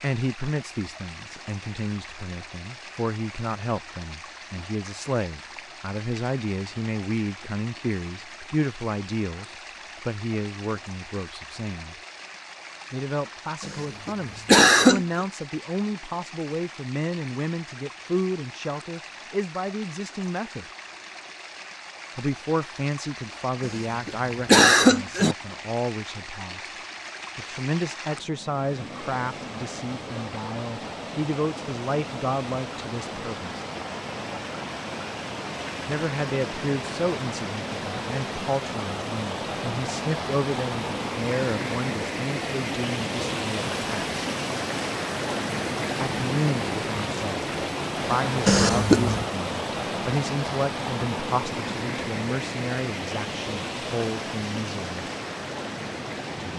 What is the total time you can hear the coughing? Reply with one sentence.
You can hear the coughing for 4 seconds altogether.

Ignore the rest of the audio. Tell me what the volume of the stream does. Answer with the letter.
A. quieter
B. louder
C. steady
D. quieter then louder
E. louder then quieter
B.